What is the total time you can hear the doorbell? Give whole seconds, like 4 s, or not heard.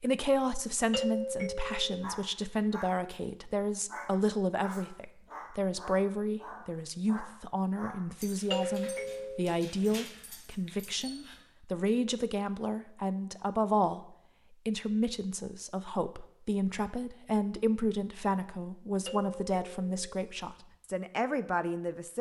3 s.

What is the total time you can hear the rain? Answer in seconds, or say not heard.
not heard.